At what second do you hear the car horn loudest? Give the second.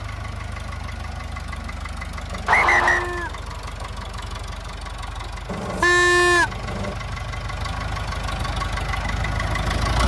6 s.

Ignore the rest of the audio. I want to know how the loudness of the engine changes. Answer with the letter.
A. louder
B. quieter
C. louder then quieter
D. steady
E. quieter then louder
A.